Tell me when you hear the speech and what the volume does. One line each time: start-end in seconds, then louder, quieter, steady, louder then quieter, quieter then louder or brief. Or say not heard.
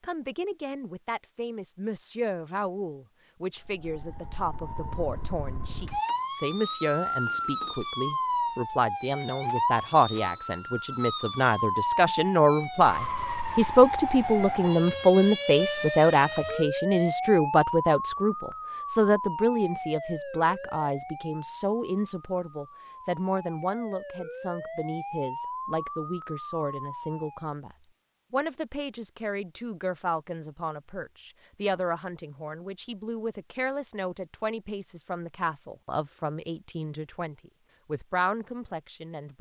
0.0-39.3 louder then quieter.